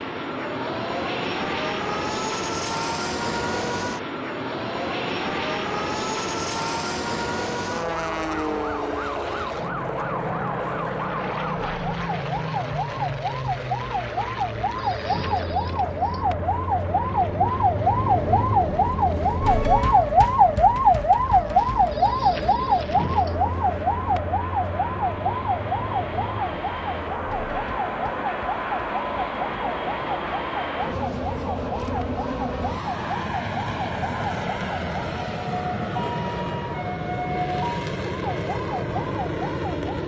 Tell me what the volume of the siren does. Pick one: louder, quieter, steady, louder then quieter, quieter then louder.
louder then quieter.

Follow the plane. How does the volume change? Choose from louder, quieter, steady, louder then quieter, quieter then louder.
quieter then louder.